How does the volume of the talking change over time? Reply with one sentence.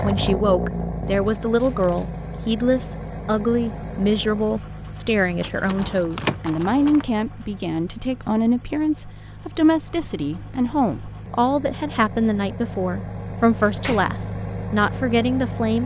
The volume of the talking stays about the same.